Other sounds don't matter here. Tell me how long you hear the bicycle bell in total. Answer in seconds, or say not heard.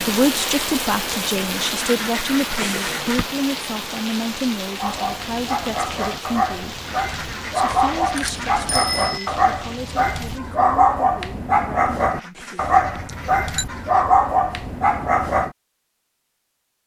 4 s.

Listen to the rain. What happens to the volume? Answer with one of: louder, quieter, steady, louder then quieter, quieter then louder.
quieter.